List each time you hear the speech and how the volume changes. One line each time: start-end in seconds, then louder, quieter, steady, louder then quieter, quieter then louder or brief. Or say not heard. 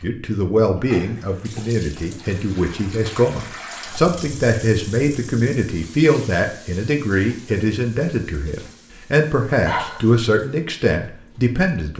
0.0-11.9 steady.